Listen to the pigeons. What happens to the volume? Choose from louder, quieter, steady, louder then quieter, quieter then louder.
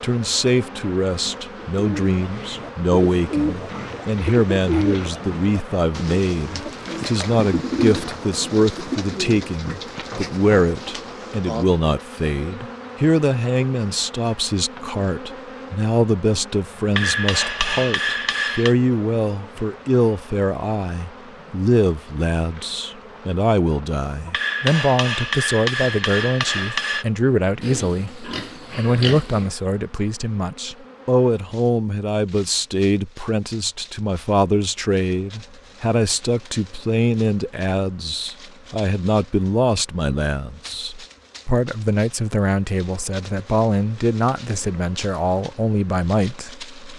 quieter.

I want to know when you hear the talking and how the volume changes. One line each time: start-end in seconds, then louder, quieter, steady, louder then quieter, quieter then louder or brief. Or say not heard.
0.0-46.7 steady.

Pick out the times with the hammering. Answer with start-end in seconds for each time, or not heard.
16.9-18.8, 24.3-27.1.